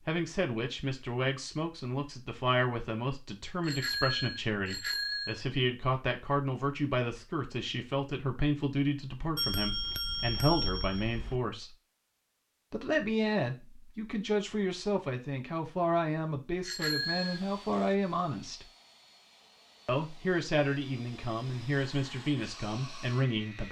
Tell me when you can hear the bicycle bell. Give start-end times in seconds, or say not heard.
3.6-5.4, 9.3-11.4, 16.6-17.4.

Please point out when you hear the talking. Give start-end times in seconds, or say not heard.
0.1-11.8, 12.7-18.6, 19.9-23.6.